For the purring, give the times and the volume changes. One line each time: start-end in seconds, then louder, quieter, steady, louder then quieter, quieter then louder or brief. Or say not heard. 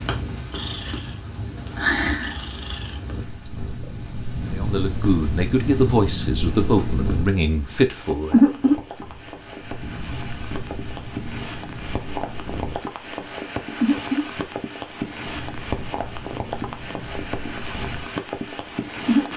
0.0-19.3 louder then quieter.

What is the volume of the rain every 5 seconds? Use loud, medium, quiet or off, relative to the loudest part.
medium, medium, loud, loud.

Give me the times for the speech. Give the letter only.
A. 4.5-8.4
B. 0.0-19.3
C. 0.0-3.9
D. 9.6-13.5
A.